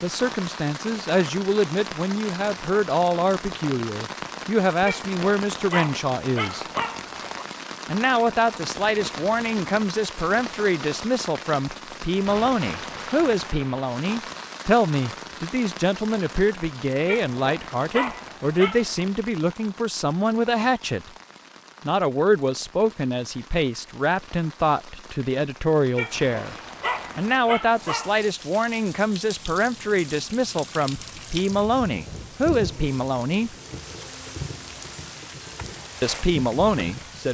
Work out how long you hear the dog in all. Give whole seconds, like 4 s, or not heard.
7 s.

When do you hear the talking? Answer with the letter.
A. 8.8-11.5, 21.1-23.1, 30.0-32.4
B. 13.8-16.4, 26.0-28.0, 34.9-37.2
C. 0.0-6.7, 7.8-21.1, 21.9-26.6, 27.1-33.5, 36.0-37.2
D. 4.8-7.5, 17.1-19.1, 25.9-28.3
C.